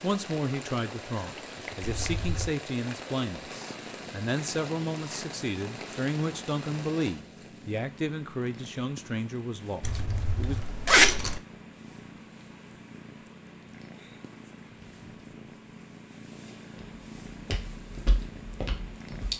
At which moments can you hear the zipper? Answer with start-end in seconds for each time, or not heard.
1.8-2.5, 9.8-11.4.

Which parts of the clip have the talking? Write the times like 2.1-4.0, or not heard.
0.0-10.6.